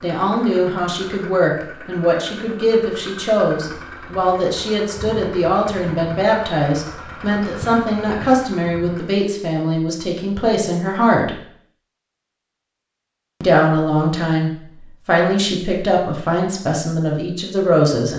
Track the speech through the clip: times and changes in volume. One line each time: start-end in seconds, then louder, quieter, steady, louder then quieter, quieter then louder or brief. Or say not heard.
0.0-11.4 steady
13.4-18.1 steady.